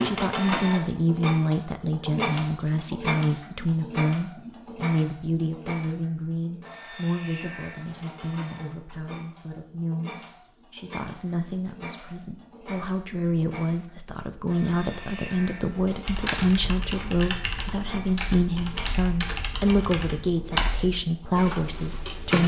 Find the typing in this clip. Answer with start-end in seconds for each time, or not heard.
16.1-22.4.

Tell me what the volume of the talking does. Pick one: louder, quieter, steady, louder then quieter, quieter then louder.
quieter then louder.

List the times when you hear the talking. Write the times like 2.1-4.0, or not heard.
0.0-22.4.